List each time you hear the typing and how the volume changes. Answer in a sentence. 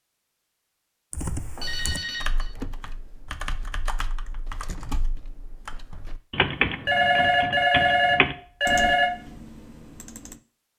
You can hear the typing from 1.1 to 10.4 s, getting louder then quieter.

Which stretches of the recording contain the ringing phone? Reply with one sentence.
You can hear the ringing phone from 1.6 to 2.5 s and from 6.8 to 9.1 s.